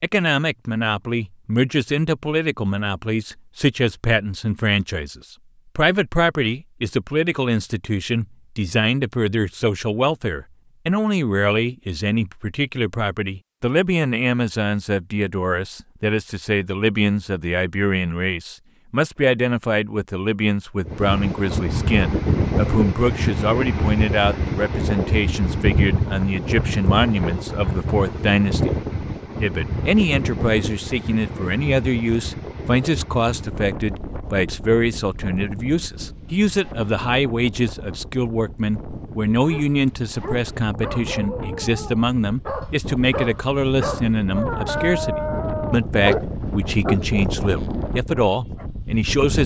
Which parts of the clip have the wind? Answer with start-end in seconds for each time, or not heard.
20.9-49.4.